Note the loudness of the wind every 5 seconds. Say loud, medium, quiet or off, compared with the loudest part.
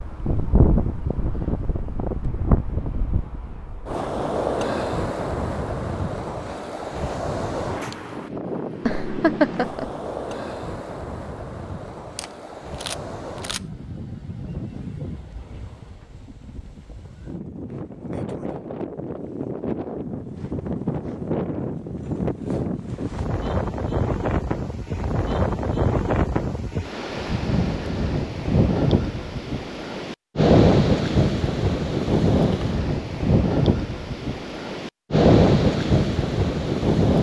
medium, medium, quiet, quiet, medium, medium, loud, loud.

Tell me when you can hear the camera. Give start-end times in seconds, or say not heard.
12.2-13.7.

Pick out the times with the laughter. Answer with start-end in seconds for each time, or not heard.
8.8-9.9.